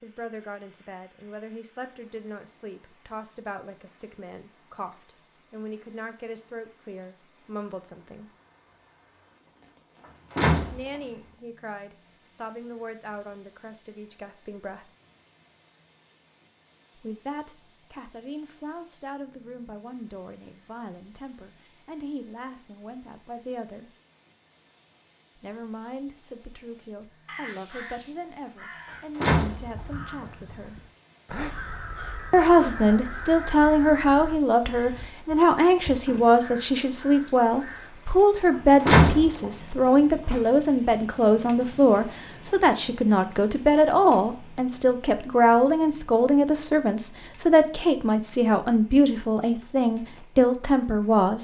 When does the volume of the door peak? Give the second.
39 s.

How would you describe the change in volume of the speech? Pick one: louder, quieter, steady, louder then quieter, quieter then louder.
louder.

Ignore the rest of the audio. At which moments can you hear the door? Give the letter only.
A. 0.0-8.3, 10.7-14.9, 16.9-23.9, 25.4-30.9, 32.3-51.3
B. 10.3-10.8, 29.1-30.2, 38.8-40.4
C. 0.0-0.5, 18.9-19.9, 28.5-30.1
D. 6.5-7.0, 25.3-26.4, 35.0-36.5
B.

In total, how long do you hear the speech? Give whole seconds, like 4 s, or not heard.
44 s.